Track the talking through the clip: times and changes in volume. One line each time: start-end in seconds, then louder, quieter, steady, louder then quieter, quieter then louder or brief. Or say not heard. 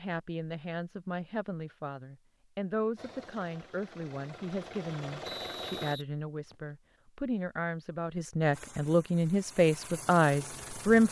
0.0-11.0 louder.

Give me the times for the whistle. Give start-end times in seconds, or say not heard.
5.2-6.5.